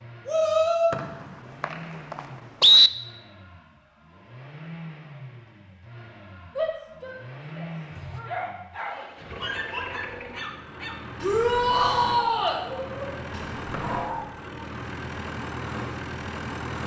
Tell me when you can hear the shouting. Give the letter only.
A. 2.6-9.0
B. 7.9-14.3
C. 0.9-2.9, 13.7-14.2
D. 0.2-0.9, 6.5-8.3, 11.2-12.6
D.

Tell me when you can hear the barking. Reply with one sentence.
The barking can be heard from 7.9 to 14.3 s.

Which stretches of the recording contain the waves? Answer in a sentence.
You can't hear the waves here.